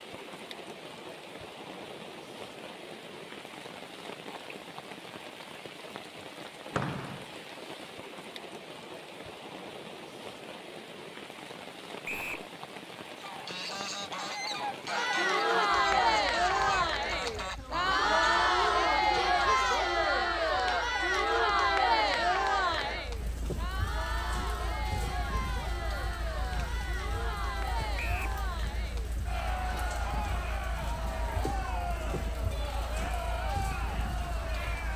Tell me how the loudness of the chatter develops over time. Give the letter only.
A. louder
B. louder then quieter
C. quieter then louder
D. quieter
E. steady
D.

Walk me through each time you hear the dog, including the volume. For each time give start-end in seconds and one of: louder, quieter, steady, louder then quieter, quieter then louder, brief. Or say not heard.
not heard.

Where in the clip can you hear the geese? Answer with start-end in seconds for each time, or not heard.
13.2-19.9.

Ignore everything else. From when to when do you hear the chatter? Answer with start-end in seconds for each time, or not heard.
14.8-34.9.